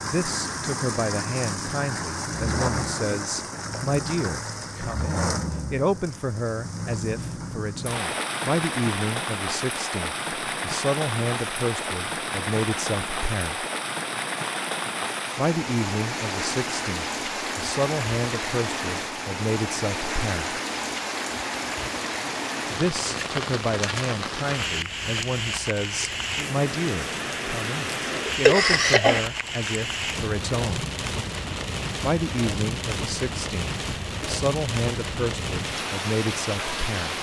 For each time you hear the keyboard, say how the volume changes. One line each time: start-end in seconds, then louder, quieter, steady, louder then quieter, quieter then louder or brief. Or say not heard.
not heard.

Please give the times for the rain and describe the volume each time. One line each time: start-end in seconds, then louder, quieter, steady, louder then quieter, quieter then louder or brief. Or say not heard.
0.0-37.1 steady.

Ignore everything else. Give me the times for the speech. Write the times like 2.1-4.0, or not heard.
0.0-13.7, 15.3-20.6, 22.7-30.9, 32.0-37.1.